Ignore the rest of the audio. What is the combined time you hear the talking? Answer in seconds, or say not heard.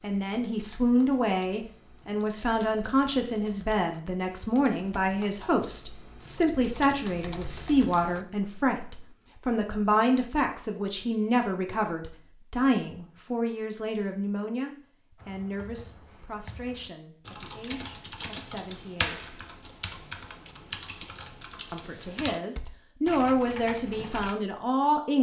23 s.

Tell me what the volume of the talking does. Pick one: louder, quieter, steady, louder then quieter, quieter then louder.
quieter then louder.